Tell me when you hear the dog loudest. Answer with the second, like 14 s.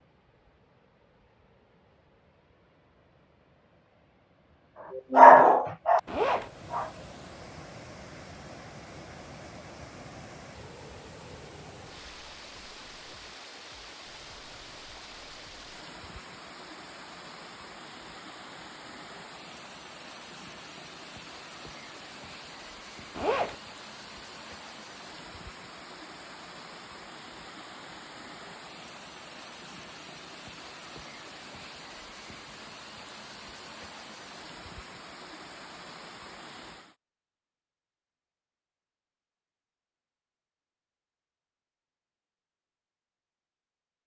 5 s.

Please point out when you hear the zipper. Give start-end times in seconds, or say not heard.
6.0-6.5, 23.1-23.6.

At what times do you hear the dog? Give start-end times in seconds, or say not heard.
5.0-6.9.